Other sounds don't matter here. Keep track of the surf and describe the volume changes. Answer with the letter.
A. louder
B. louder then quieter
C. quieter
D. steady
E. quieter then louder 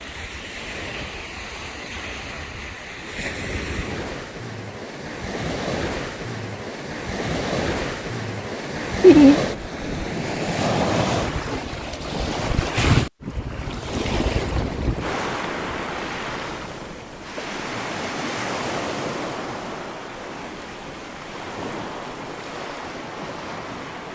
B.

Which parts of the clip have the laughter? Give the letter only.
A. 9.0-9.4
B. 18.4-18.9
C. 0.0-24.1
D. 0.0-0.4
A.